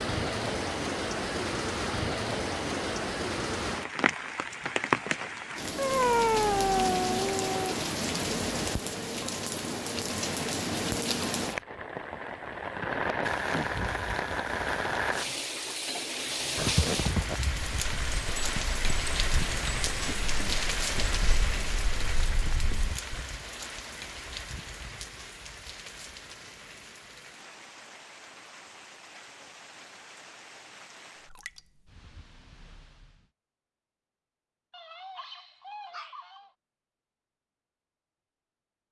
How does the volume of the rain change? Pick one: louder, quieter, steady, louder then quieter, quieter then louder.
quieter.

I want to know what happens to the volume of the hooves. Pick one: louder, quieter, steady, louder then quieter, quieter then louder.
quieter.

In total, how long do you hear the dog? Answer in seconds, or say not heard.
4 s.